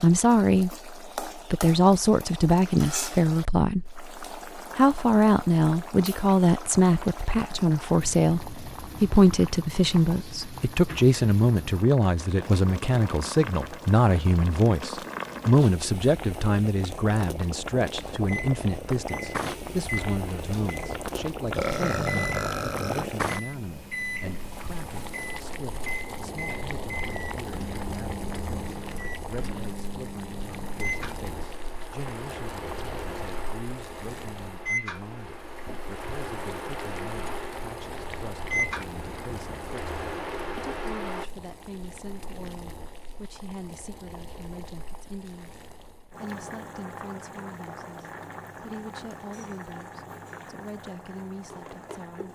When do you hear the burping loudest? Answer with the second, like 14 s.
22 s.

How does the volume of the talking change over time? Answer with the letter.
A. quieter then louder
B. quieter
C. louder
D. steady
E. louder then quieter
B.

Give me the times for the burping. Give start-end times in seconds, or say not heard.
21.5-23.1.